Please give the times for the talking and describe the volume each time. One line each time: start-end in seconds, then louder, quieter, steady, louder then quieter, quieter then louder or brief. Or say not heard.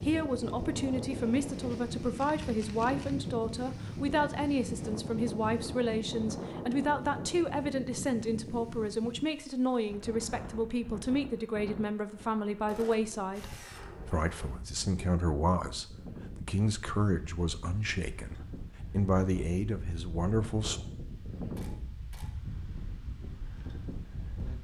0.0-20.8 steady.